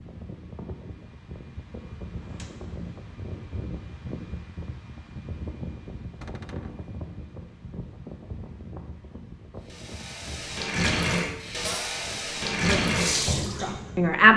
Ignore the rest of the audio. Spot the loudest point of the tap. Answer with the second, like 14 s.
13 s.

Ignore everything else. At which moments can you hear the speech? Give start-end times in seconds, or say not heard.
12.7-14.3.